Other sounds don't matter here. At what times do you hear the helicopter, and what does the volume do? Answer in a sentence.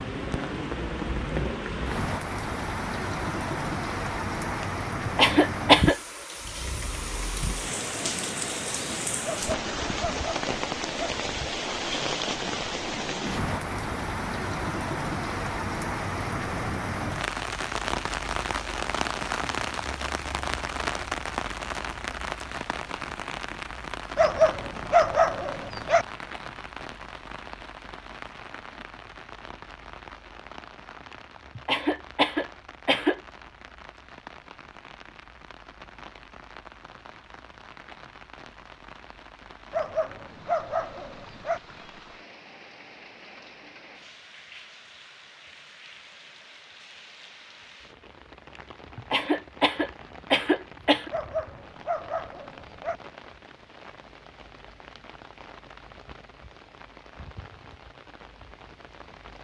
You can't hear the helicopter here.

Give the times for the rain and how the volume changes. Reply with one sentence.
You can hear the rain from 0.0 to 59.3 s, getting quieter.